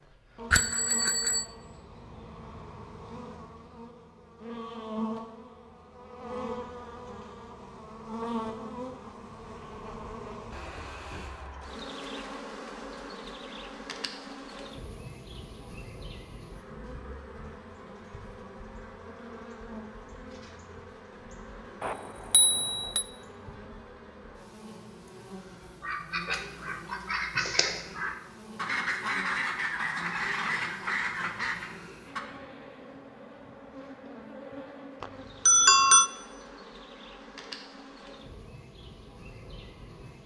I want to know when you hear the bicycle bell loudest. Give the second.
36 s.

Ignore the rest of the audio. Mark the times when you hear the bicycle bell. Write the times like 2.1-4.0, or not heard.
0.5-1.4, 21.8-23.1, 35.0-36.1.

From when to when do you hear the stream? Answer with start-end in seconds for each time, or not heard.
not heard.